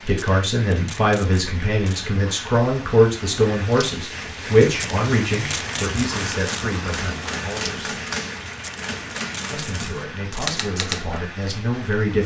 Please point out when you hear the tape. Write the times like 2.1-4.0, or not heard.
0.1-2.0, 4.7-6.7, 8.5-10.5.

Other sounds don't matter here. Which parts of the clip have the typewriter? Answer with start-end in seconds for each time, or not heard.
6.1-11.2.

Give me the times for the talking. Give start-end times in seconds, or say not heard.
0.1-8.0, 9.5-12.2.